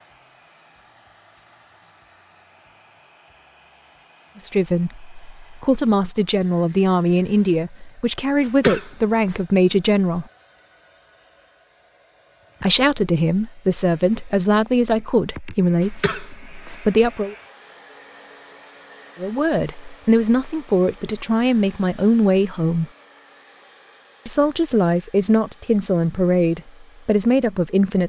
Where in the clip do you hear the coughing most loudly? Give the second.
9 s.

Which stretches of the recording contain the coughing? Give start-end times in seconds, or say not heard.
8.4-9.4, 15.8-16.8.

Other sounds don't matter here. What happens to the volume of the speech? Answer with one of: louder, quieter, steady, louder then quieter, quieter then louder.
steady.